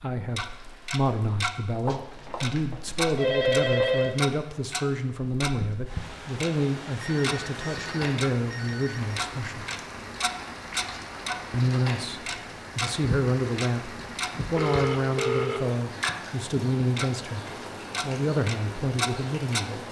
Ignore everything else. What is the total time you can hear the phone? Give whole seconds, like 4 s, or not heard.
6 s.